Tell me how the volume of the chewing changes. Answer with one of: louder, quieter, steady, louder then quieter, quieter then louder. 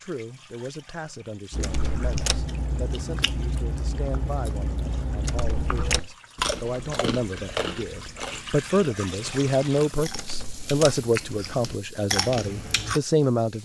quieter then louder.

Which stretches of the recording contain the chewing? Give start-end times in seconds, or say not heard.
1.5-13.0.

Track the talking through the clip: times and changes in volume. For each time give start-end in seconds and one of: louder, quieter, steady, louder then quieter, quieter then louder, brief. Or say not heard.
0.0-13.6 louder.